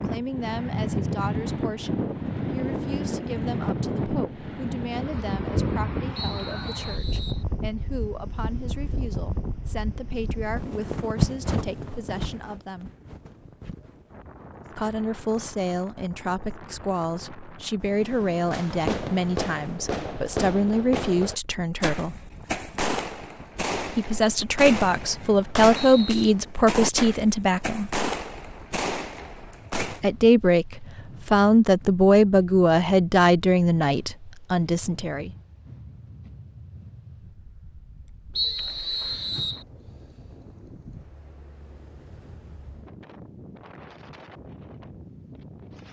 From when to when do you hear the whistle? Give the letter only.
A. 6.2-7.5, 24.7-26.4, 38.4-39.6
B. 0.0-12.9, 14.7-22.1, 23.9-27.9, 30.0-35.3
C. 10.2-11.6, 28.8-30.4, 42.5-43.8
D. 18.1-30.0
A.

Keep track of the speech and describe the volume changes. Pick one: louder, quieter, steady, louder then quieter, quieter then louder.
louder.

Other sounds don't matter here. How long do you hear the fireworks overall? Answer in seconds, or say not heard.
12 s.